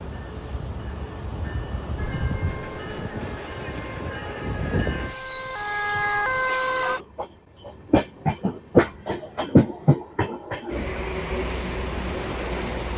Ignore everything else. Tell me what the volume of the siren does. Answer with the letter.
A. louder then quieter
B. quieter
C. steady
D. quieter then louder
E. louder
E.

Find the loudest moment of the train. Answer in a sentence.
The loudest moment of the train is at 9 seconds.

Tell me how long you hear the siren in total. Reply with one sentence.
The siren can be heard for 5 seconds in total.